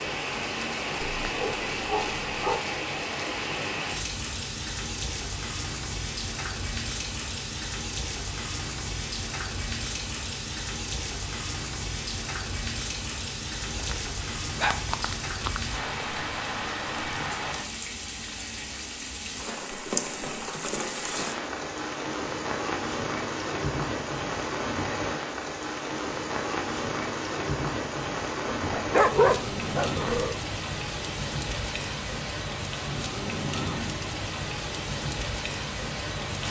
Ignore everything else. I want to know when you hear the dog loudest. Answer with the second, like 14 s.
29 s.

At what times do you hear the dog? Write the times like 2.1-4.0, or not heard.
1.1-2.6, 13.6-15.6, 28.5-30.4.